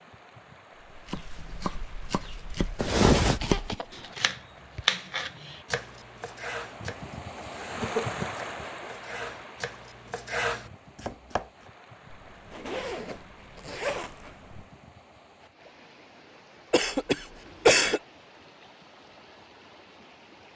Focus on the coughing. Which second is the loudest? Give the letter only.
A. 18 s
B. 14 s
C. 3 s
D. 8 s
A.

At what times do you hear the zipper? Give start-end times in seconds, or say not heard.
2.8-3.4, 12.1-14.7.